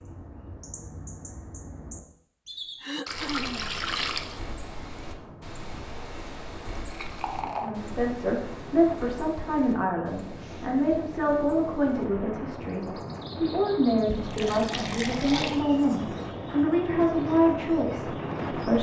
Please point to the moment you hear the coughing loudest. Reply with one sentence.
The loudest moment of the coughing is at 3 seconds.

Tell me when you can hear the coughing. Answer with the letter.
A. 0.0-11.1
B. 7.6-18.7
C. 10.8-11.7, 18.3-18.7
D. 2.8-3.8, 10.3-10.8
D.